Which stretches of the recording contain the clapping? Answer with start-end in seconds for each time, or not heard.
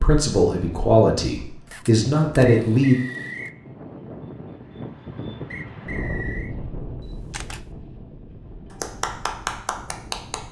8.7-10.4.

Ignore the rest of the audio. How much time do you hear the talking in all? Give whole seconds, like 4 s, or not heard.
3 s.